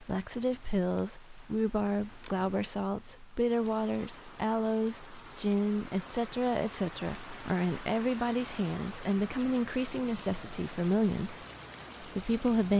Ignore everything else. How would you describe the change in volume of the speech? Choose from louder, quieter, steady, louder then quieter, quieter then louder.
steady.